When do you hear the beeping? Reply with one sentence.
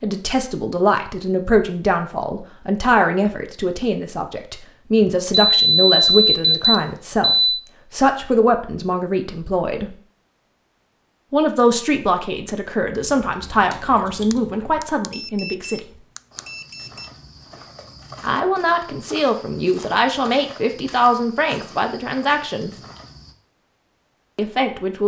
The beeping can be heard from 5.5 to 7.6 s and from 14.3 to 17.1 s.